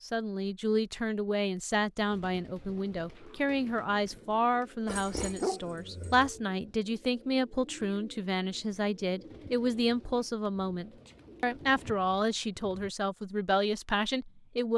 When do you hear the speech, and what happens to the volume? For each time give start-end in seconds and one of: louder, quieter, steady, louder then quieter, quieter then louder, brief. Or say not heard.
0.0-14.7 steady.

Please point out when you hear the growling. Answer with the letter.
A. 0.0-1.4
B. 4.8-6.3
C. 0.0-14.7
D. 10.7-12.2
B.